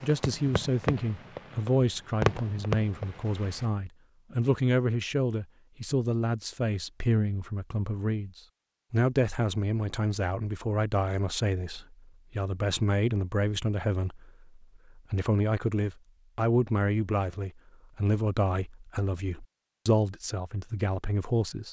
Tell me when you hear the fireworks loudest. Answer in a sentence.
The loudest moment of the fireworks is at 2 seconds.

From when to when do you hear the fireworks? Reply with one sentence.
You can hear the fireworks from 0.0 to 3.6 s.